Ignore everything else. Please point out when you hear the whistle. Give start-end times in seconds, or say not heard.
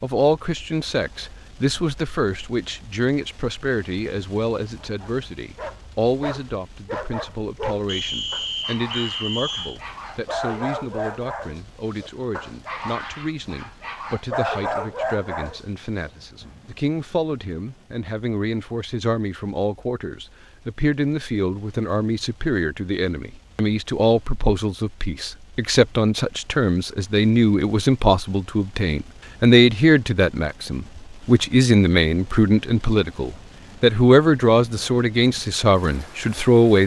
7.8-9.8.